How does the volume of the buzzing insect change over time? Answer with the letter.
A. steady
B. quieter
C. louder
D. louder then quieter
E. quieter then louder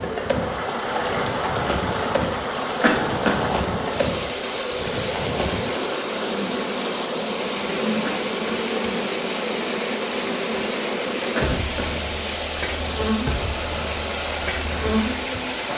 A.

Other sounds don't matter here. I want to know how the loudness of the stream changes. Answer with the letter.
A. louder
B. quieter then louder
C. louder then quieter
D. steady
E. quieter
D.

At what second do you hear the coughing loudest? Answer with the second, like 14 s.
3 s.